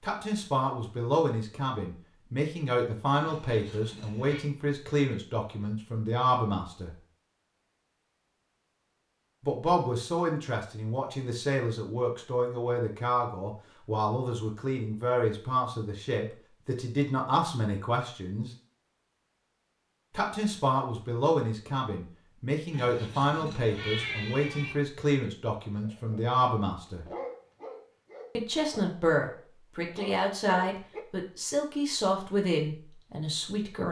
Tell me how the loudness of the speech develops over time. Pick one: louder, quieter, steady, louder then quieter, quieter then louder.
steady.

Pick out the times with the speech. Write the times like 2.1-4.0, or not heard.
0.0-7.0, 9.4-18.5, 20.1-27.1, 28.4-33.8.